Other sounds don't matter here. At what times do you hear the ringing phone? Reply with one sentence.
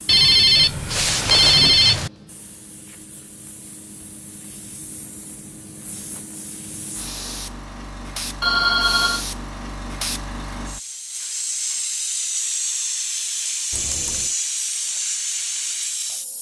You can hear the ringing phone from 0.1 to 2.1 s, from 8.4 to 9.2 s and from 13.7 to 14.3 s.